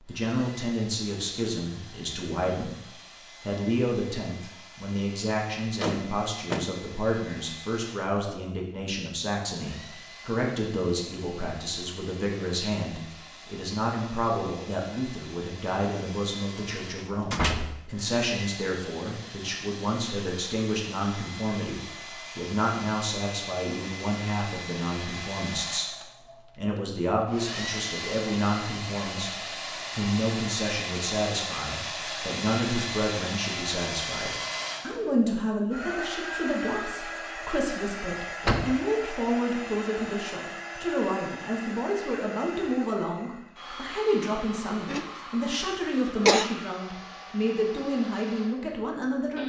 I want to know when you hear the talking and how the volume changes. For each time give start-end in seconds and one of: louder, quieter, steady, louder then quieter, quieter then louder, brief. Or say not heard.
0.0-2.8 brief
3.4-49.4 steady.